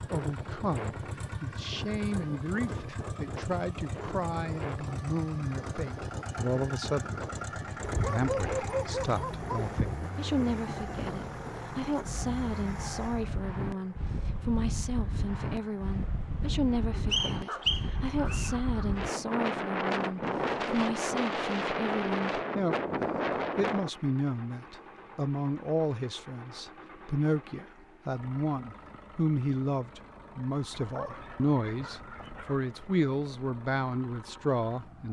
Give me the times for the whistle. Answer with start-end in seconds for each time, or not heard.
17.1-18.5.